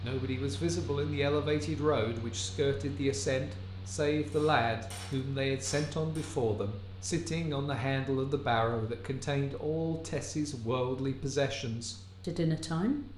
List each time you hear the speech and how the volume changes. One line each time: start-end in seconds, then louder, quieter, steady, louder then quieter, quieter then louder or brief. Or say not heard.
0.0-13.1 steady.